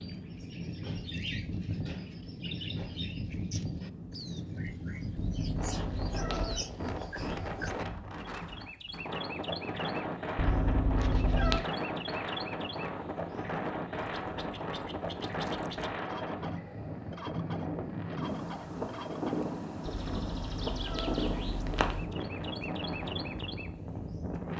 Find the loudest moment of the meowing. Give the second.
11 s.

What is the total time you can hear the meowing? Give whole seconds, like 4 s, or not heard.
5 s.